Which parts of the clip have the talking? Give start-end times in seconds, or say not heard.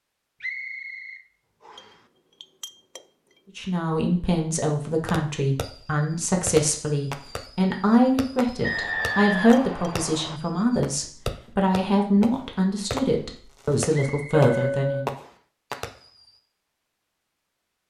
3.5-15.2.